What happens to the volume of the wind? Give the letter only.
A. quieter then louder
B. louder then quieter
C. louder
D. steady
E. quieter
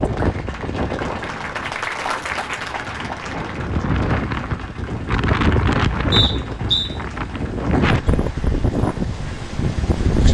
C.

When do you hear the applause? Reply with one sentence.
You can hear the applause from 0.0 to 10.2 s.